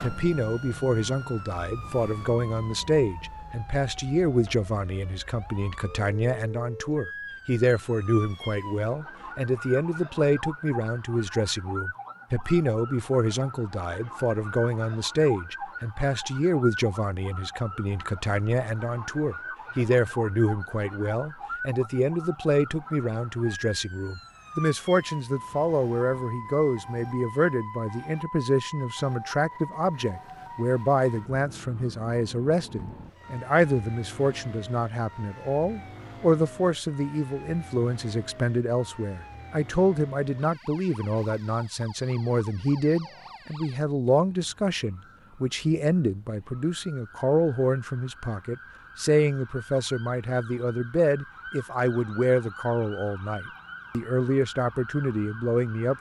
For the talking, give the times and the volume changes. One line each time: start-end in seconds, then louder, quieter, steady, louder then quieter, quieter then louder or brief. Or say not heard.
0.0-55.9 steady.